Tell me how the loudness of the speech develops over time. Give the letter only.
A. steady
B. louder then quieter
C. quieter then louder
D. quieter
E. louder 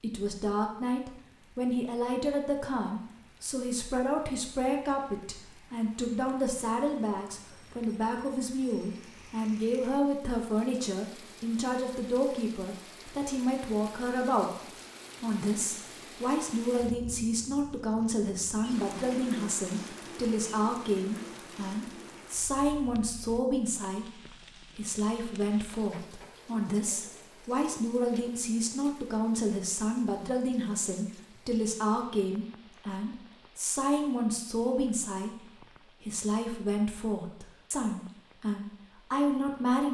A.